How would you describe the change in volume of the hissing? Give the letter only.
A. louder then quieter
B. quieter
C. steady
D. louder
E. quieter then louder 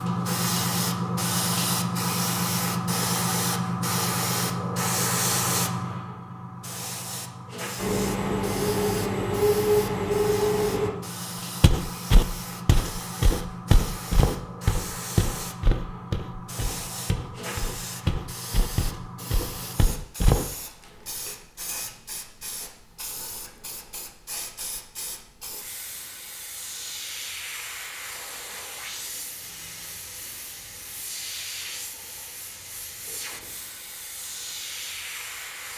B.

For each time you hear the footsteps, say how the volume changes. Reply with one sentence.
The footsteps can be heard from 11.6 to 20.4 s, getting quieter.